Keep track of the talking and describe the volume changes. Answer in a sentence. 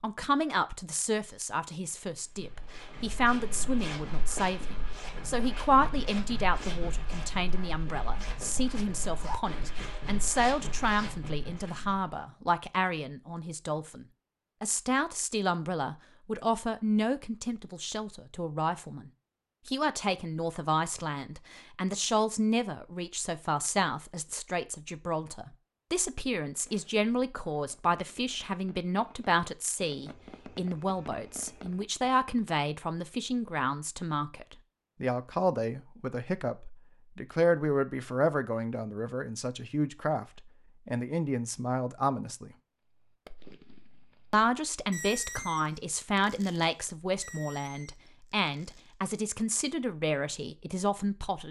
The volume of the talking stays about the same.